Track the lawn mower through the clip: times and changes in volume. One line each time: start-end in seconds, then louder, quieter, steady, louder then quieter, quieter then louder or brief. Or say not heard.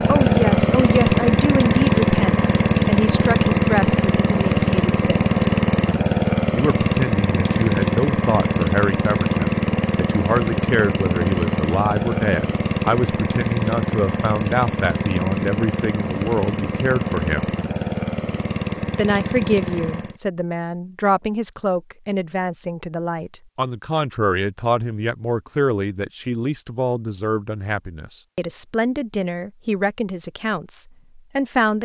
0.0-20.2 quieter.